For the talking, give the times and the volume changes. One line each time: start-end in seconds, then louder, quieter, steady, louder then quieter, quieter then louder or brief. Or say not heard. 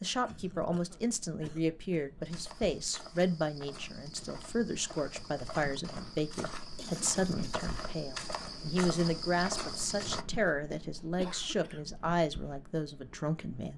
0.0-13.7 steady.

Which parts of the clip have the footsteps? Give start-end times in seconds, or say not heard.
2.2-10.2.